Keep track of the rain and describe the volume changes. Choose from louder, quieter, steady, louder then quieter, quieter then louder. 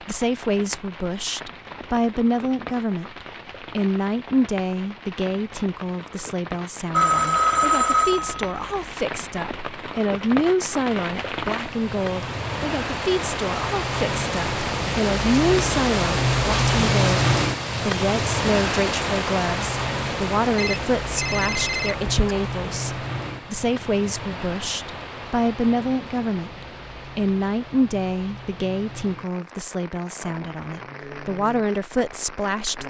louder then quieter.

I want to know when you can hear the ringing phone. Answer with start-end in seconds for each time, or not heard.
6.9-8.9, 20.6-22.1.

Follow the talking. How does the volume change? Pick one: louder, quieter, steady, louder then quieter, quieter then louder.
steady.